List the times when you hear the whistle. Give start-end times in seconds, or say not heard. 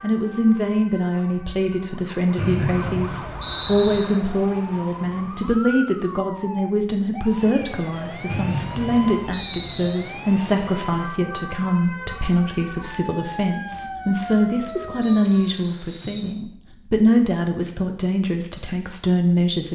2.4-4.0, 8.2-9.9, 15.0-16.3.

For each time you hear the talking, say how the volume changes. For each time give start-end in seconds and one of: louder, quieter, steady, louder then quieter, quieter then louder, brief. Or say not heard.
0.0-19.7 steady.